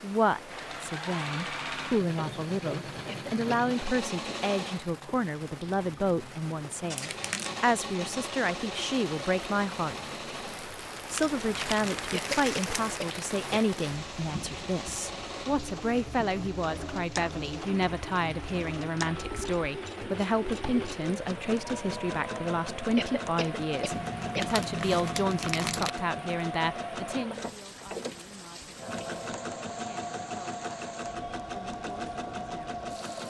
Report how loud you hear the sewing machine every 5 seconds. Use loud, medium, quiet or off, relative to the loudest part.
loud, loud, medium, loud, loud, loud, loud.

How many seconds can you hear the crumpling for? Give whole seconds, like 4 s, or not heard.
4 s.